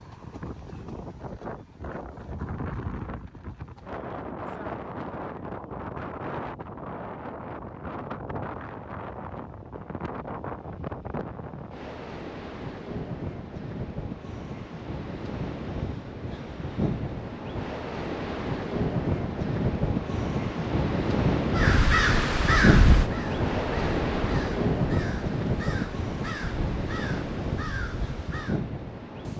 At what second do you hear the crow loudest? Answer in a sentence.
The loudest moment of the crow is at 23 seconds.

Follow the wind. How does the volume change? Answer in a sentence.
The volume of the wind goes up.